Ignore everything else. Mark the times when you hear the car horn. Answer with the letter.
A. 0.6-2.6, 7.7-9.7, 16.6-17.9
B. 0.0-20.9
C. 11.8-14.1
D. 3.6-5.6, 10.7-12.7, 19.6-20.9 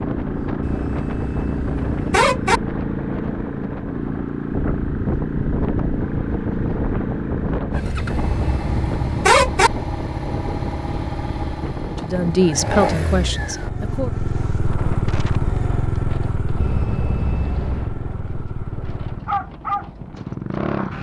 A.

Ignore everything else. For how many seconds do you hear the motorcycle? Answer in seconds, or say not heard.
21 s.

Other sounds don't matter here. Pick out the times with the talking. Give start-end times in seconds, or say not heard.
11.8-14.1.